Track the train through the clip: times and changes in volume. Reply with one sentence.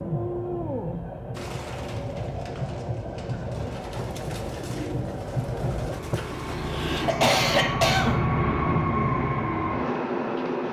The train can be heard from 0.0 to 10.6 s, getting louder.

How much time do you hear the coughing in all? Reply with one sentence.
You can hear the coughing for 2 seconds altogether.